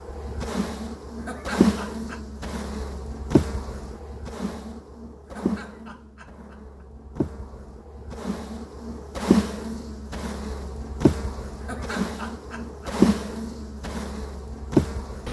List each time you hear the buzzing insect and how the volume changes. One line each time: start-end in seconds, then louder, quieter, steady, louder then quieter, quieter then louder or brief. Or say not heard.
0.0-15.2 quieter then louder.